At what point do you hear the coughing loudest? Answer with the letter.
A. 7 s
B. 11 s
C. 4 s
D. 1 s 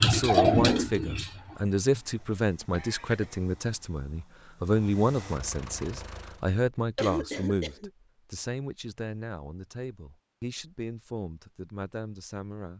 A.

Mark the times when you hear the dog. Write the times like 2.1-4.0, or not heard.
not heard.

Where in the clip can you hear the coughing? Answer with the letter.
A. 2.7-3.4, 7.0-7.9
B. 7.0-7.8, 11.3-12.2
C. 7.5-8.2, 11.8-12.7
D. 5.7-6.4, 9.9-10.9
A.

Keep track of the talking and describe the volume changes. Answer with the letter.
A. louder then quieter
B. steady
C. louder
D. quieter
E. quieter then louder
D.